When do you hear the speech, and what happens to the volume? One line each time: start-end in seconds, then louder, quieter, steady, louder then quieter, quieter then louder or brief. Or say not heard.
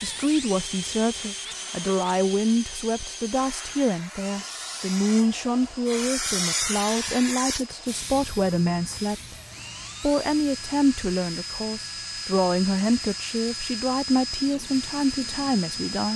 0.0-9.3 steady
10.0-16.1 steady.